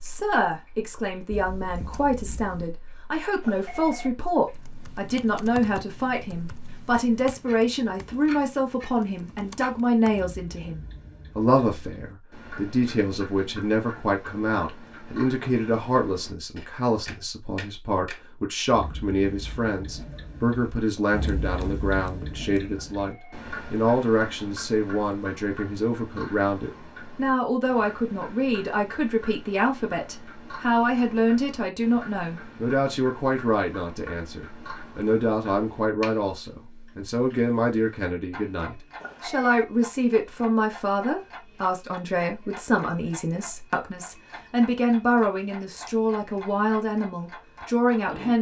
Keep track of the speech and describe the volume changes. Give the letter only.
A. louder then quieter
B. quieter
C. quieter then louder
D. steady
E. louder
D.